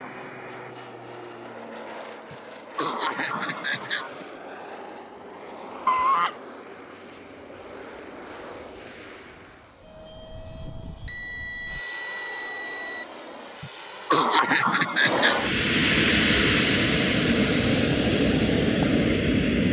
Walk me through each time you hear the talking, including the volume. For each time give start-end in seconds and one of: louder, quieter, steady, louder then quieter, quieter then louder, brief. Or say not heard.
not heard.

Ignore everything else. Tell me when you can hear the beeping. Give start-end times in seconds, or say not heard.
5.8-6.3, 11.1-13.1.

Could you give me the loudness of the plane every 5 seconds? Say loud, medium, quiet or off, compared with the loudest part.
quiet, quiet, quiet, loud.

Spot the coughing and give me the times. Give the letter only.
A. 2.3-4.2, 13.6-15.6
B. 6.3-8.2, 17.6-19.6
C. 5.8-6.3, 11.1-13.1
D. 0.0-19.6
A.